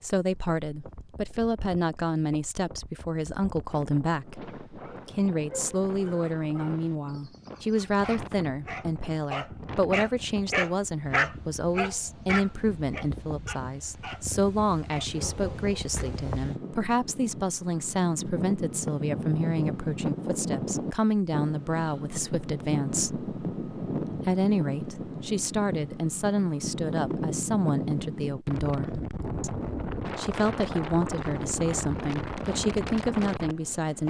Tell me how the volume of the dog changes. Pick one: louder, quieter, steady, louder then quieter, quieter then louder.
louder then quieter.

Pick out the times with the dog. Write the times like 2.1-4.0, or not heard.
4.4-16.0.